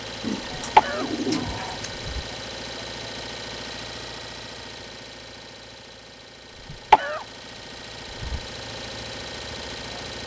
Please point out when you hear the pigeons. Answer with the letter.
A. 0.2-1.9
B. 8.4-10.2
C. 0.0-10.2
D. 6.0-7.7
A.